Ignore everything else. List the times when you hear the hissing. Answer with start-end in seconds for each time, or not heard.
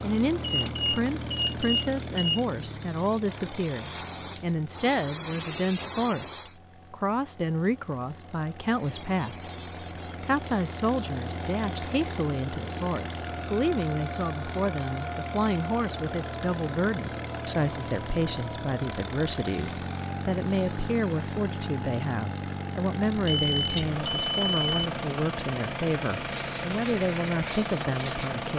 0.0-6.5, 8.6-21.6, 25.9-28.4.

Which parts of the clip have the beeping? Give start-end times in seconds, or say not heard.
0.4-2.4, 23.1-24.9.